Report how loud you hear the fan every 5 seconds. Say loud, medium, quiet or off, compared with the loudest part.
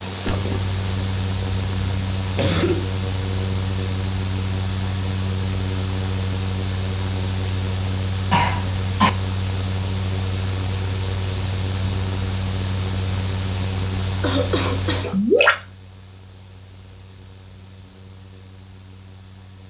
loud, loud, loud, quiet.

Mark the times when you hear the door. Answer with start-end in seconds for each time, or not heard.
not heard.